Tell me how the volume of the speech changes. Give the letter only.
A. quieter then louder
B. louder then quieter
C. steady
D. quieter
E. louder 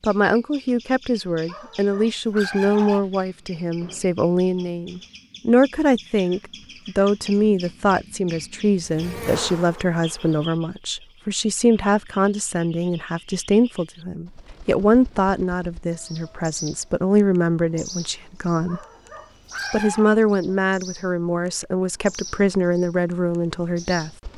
C.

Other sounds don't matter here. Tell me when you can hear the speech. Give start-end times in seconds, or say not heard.
0.0-18.8, 19.7-24.1.